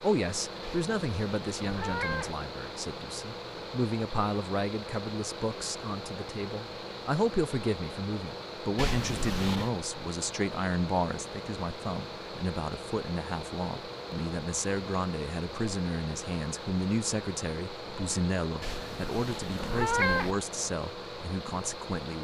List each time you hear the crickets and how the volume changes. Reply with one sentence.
The crickets can't be heard in this clip.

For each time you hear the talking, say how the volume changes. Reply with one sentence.
You can hear the talking from 0.0 to 22.2 s, at a steady volume.